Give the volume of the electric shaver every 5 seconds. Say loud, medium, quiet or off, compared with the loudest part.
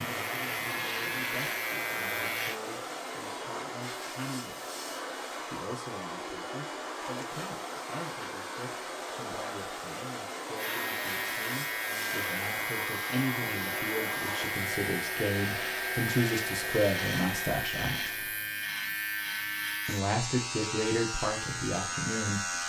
loud, off, loud, loud, loud.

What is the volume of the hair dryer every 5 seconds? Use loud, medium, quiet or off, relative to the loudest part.
loud, loud, loud, loud, off.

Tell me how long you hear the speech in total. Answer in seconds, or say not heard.
20 s.